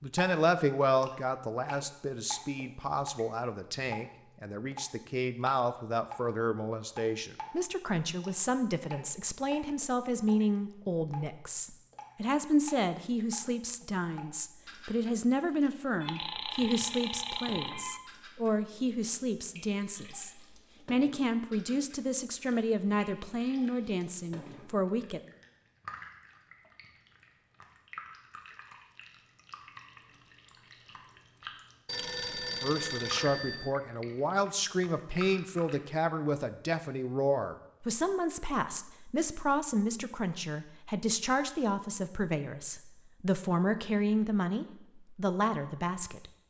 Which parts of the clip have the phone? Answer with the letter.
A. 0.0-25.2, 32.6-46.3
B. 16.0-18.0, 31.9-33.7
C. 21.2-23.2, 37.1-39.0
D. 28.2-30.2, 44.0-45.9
B.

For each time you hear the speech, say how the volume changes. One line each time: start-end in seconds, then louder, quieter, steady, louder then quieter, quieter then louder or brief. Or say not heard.
0.0-25.2 steady
32.6-46.3 steady.